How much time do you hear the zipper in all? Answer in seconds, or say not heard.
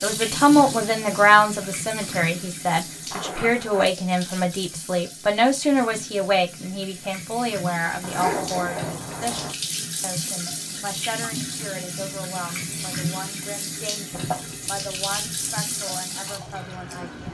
4 s.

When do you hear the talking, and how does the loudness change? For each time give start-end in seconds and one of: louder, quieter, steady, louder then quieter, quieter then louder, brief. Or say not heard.
0.0-17.3 quieter.